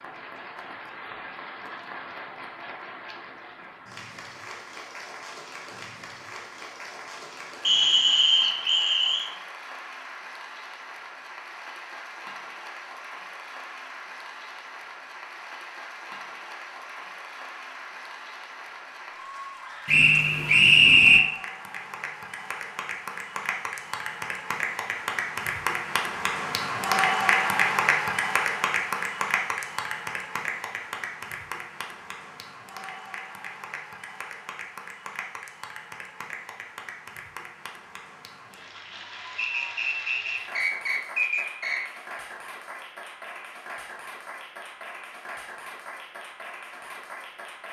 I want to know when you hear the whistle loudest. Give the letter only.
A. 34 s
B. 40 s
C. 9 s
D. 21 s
D.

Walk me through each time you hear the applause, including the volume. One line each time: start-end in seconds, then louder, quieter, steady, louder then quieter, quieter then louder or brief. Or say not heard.
0.0-47.6 louder then quieter.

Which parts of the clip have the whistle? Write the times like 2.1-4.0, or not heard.
7.6-9.3, 19.9-21.2, 39.4-41.8.